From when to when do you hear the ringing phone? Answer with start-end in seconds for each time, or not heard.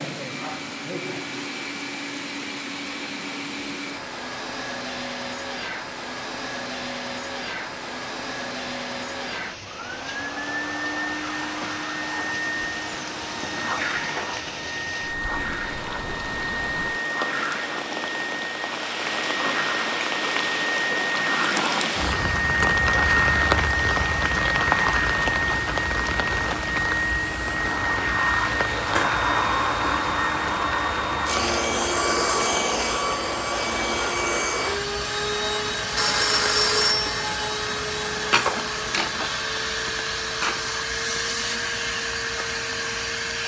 36.0-37.3.